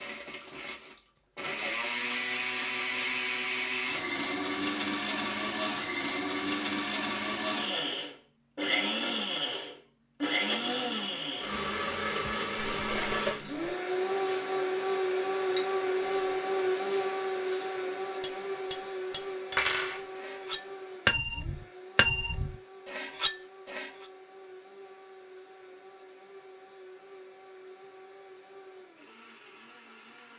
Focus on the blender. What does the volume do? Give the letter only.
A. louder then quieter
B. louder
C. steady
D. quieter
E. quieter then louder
D.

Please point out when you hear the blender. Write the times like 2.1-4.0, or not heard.
0.0-30.3.